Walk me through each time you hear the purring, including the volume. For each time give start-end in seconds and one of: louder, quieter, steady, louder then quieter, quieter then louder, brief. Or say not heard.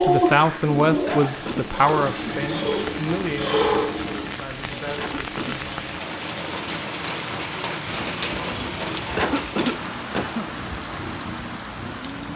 0.0-12.3 quieter.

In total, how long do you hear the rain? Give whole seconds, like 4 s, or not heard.
12 s.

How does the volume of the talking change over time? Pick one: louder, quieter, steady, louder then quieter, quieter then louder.
quieter.